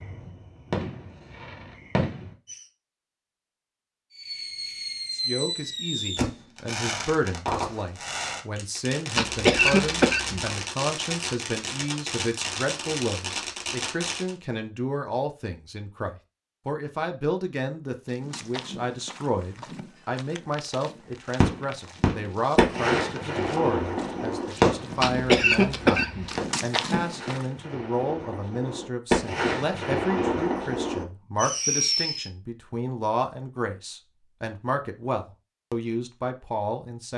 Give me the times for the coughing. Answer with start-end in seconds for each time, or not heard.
9.2-10.6, 25.0-26.4.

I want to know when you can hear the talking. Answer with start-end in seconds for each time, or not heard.
5.1-37.1.